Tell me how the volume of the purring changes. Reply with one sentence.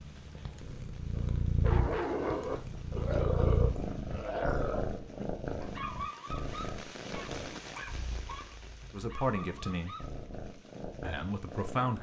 The loudness of the purring goes down.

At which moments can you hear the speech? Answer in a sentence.
The speech can be heard from 8.9 to 9.9 s and from 11.0 to 11.9 s.